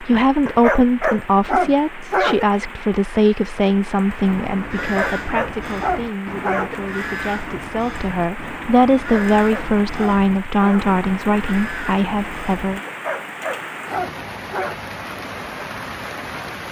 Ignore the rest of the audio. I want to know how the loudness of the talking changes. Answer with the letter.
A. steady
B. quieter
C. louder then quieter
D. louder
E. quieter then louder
E.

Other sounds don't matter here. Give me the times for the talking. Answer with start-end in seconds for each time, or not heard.
0.0-12.8.